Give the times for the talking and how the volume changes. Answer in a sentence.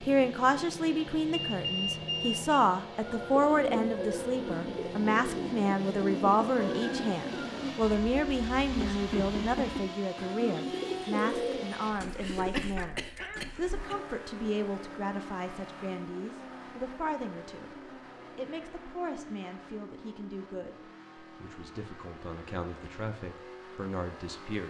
The talking can be heard from 0.0 to 24.6 s, getting quieter.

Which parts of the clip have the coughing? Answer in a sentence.
You can hear the coughing from 12.2 to 13.9 s.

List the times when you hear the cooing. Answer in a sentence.
You can hear the cooing from 3.0 to 12.5 s.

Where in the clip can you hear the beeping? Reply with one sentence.
The beeping can be heard from 1.3 to 2.6 s.